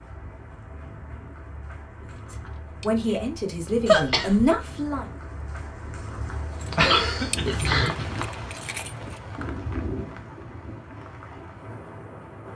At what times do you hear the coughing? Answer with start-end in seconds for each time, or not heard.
3.9-4.5, 6.7-8.1.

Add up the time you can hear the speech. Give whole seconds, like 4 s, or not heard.
3 s.